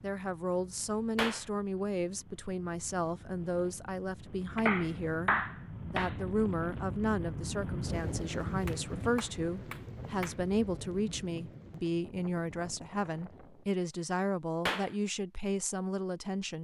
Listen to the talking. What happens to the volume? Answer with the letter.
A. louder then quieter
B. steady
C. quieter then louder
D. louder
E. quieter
B.